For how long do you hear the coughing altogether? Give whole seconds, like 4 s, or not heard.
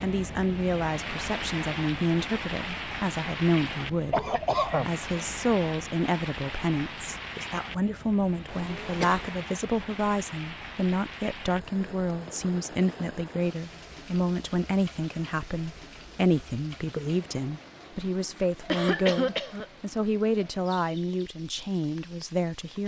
3 s.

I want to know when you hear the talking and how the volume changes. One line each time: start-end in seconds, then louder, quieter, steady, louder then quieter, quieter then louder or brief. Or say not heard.
0.0-22.8 steady.